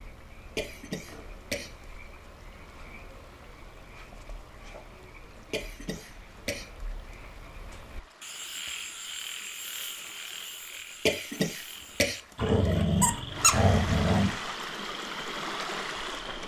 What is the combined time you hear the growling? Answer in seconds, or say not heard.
2 s.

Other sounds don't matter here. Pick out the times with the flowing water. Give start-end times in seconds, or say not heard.
0.0-16.4.